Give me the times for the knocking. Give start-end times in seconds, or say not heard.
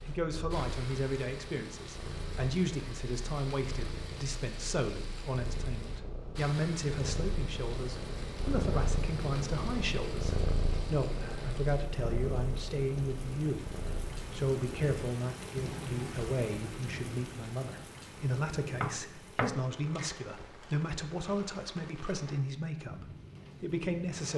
18.7-19.8.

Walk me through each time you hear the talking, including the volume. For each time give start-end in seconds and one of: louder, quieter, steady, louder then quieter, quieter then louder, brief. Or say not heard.
0.1-24.3 steady.